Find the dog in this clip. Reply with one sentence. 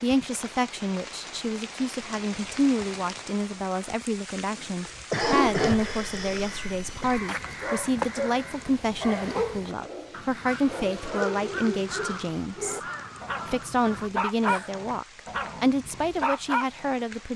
The dog can be heard from 5.0 to 16.9 s.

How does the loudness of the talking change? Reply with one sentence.
The volume of the talking stays about the same.